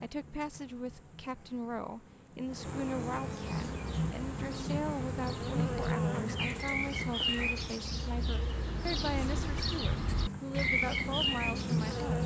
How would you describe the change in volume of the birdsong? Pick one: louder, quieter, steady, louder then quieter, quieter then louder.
louder.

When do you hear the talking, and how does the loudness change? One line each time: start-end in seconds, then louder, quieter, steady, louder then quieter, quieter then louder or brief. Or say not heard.
0.0-12.2 steady.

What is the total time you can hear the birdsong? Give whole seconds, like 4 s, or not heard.
9 s.